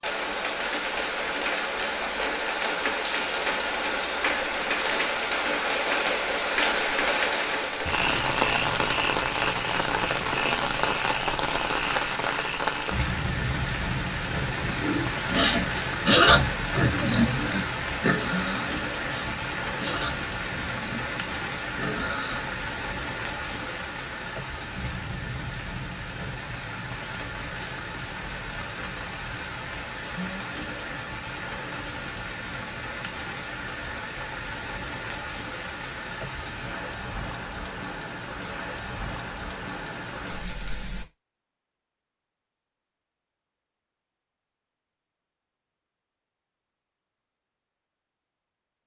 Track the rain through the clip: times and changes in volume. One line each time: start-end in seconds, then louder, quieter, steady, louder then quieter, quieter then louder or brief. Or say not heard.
0.0-41.0 quieter.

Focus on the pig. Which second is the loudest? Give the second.
16 s.